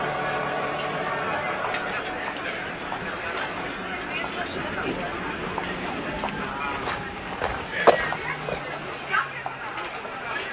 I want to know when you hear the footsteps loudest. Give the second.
8 s.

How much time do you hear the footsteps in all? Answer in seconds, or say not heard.
2 s.